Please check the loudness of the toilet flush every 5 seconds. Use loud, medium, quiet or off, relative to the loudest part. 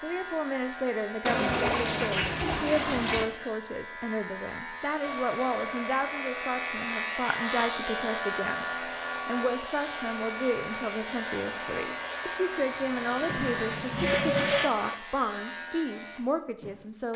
loud, off, loud, off.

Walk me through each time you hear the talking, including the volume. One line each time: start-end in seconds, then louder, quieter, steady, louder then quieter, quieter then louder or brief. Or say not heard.
0.0-17.1 steady.